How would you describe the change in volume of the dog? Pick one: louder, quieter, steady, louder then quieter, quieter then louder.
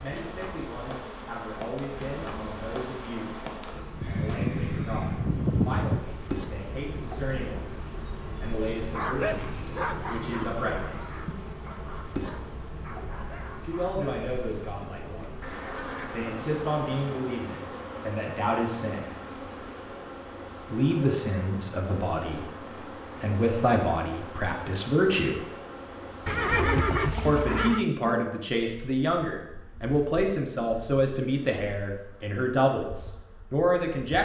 quieter.